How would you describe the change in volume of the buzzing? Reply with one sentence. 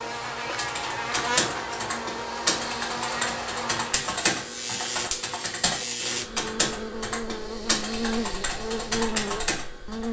The loudness of the buzzing stays about the same.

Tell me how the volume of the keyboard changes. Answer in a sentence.
The volume of the keyboard stays about the same.